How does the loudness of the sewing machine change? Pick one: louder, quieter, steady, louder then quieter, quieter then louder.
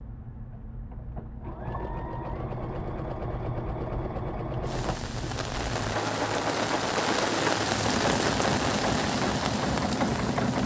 louder.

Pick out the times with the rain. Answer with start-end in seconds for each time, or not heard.
4.6-10.6.